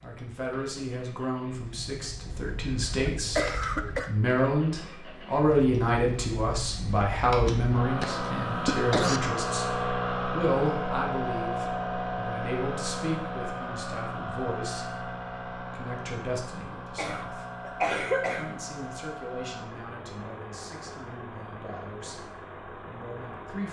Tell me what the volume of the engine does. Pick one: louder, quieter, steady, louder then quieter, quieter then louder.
louder then quieter.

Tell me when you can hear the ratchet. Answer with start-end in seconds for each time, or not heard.
not heard.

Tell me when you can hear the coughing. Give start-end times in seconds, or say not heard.
2.4-4.1, 8.0-9.2, 16.9-18.6.